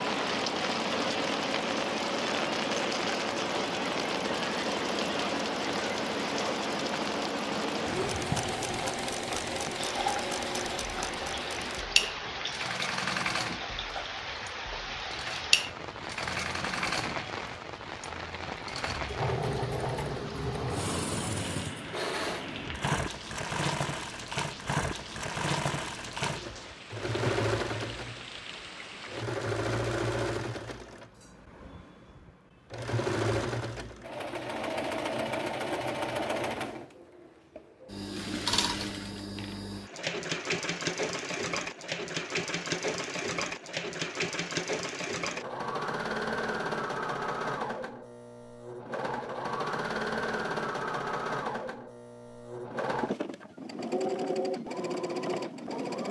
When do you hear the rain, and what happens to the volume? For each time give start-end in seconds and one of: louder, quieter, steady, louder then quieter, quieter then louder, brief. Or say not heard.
0.0-29.2 quieter.